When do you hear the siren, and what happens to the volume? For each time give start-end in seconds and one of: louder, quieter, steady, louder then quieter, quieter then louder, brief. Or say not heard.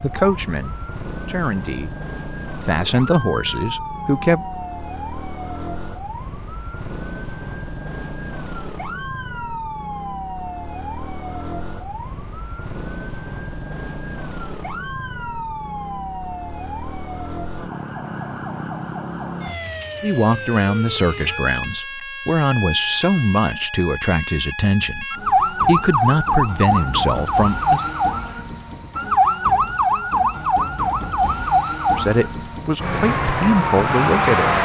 0.0-34.5 louder.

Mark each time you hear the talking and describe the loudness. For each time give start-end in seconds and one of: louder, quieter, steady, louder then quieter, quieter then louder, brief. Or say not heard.
0.0-2.0 brief
2.6-4.5 brief
20.0-27.8 steady
31.9-34.5 brief.